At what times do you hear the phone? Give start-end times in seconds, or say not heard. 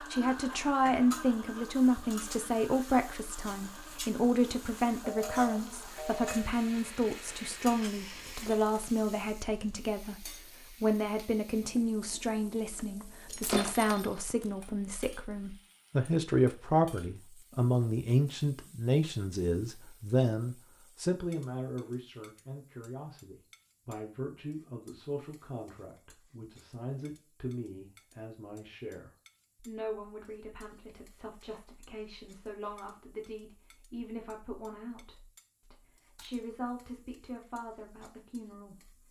5.0-6.5.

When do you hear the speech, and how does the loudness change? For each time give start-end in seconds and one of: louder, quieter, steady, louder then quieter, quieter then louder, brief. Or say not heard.
0.0-39.0 quieter.